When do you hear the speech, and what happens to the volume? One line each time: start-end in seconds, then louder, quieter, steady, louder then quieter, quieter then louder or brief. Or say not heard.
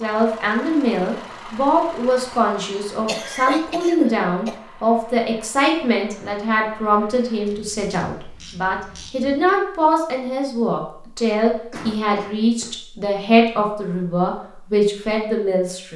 0.0-15.9 steady.